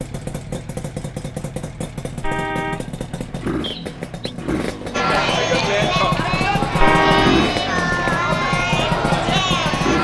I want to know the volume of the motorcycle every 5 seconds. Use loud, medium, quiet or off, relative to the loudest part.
medium, loud.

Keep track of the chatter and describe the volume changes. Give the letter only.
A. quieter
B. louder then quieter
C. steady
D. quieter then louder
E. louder
C.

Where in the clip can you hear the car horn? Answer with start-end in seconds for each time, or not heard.
2.2-2.9, 6.8-7.3.